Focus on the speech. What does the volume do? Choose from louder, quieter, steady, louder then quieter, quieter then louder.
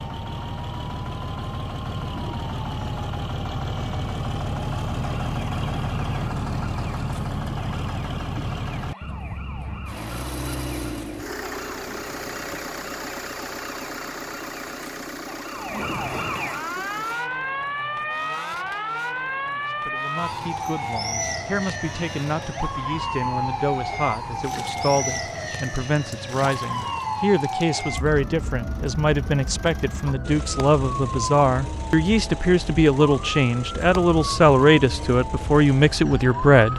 louder.